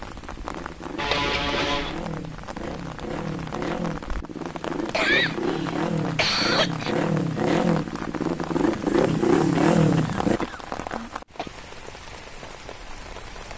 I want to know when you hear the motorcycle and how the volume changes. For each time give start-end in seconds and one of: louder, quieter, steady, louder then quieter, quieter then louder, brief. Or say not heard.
0.0-10.4 louder.